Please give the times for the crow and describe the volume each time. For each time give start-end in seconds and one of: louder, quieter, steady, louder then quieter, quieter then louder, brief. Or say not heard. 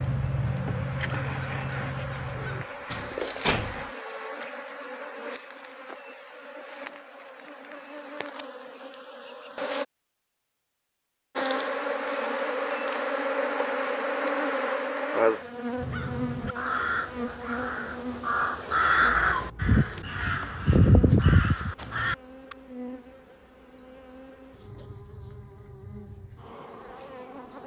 0.0-2.6 brief
15.8-22.6 louder.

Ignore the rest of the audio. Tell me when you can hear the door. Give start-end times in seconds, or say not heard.
2.4-3.9.